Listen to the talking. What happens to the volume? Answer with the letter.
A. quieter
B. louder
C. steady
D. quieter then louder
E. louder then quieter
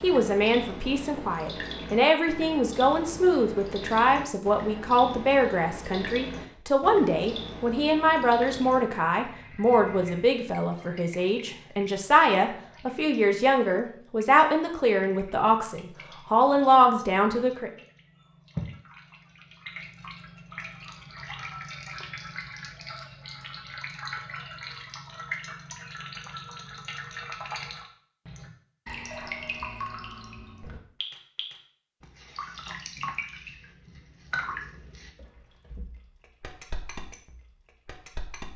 C.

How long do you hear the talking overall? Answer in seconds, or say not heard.
18 s.